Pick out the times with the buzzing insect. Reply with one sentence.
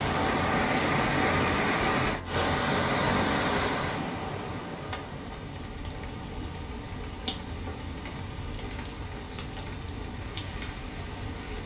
The buzzing insect can't be heard in this clip.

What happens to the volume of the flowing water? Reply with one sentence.
The volume of the flowing water goes down.